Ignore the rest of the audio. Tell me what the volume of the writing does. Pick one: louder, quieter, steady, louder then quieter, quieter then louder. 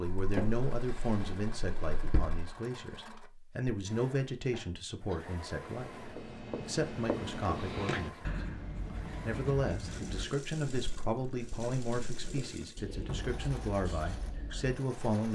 quieter.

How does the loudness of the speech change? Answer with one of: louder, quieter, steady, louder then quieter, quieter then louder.
steady.